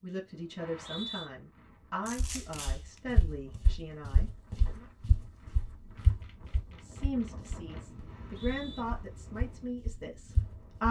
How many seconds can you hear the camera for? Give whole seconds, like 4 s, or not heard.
3 s.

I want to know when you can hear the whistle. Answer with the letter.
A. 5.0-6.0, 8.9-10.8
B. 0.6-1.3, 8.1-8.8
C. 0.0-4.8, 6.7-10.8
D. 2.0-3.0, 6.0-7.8
B.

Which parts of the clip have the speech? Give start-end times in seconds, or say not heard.
0.0-4.8, 6.7-10.8.